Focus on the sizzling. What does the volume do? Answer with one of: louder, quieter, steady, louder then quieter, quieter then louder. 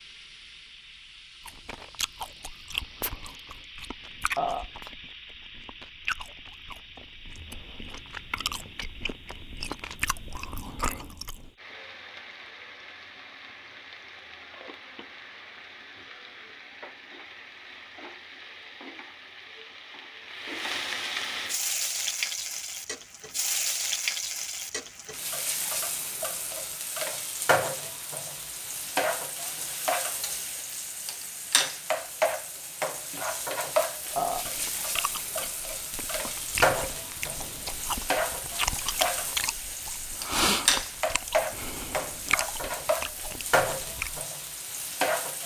louder.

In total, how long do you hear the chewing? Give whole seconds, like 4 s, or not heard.
20 s.